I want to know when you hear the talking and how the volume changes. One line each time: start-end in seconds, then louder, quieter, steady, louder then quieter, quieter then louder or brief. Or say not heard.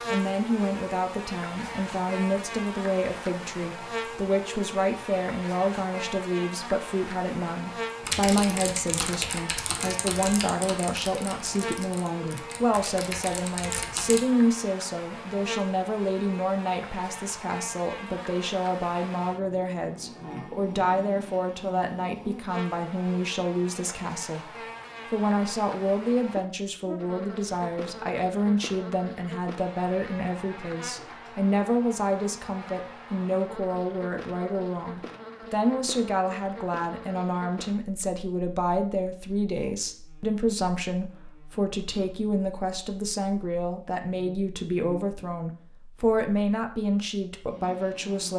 0.1-48.3 steady.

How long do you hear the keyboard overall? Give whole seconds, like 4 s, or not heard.
6 s.